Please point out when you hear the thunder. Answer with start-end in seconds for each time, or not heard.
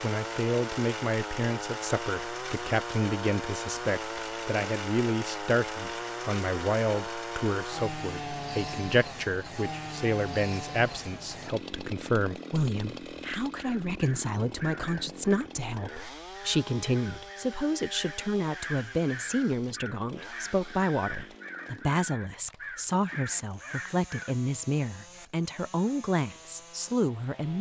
not heard.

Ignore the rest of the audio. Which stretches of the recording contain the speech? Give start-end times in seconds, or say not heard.
0.0-27.5.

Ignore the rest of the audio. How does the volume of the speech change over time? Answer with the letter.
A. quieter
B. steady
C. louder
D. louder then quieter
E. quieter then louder
B.